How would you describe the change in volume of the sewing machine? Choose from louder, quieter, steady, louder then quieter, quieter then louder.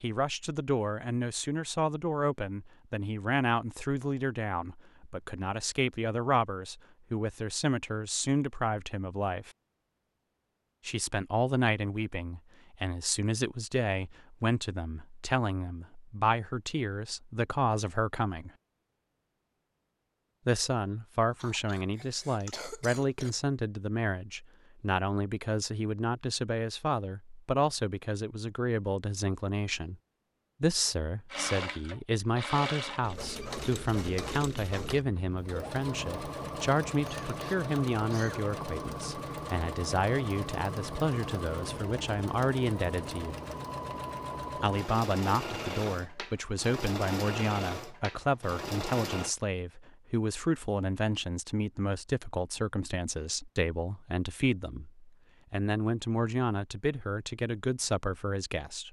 steady.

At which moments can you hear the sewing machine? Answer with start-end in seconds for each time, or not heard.
31.3-49.4.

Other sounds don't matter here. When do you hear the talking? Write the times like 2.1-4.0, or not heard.
0.0-9.5, 10.8-18.5, 20.4-29.9, 30.6-43.4, 44.5-58.8.